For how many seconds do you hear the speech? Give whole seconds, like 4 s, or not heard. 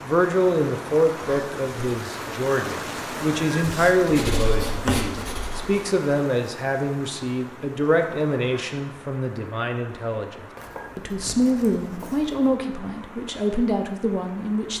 15 s.